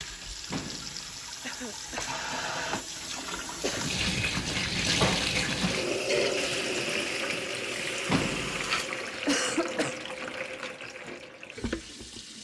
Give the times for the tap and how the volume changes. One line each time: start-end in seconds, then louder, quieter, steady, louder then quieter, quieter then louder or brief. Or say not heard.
0.0-12.3 louder then quieter.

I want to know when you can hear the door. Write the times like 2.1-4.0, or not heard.
0.5-1.1, 8.1-8.8.